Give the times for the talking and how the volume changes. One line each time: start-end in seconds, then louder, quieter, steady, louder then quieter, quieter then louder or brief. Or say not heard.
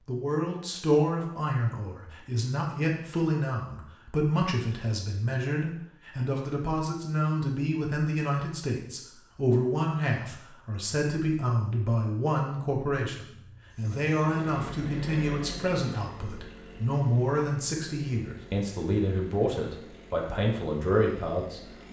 0.1-21.6 steady.